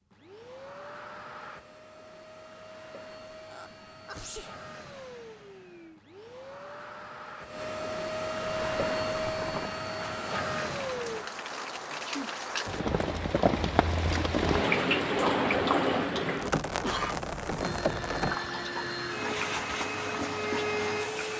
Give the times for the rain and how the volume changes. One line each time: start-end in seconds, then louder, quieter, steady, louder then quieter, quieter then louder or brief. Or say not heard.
8.4-21.3 louder then quieter.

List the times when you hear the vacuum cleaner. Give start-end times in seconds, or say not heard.
0.1-11.3, 17.6-21.3.